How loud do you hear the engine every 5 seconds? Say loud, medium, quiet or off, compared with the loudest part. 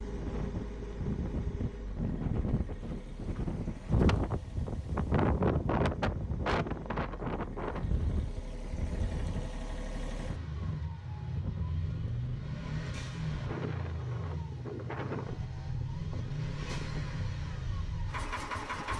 medium, medium, loud, loud.